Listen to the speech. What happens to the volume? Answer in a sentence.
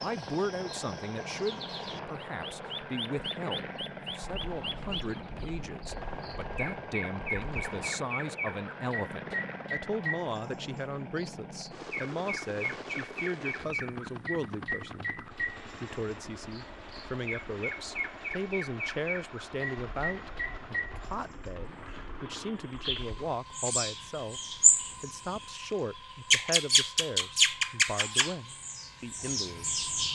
The volume of the speech stays about the same.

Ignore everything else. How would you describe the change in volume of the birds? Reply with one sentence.
The volume of the birds goes up.